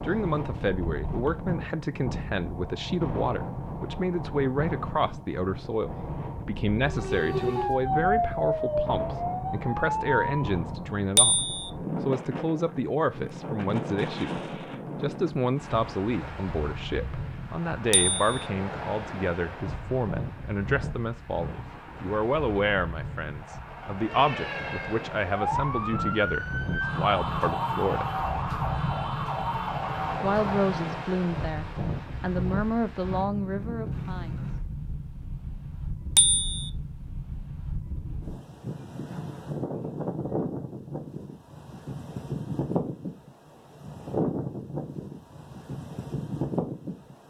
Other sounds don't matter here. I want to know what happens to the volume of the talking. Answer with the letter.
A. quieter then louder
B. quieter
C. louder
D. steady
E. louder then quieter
D.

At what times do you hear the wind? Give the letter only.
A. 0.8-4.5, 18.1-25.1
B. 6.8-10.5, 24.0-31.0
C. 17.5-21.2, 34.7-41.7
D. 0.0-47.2
D.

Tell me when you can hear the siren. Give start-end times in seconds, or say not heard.
6.8-10.5, 24.0-31.0.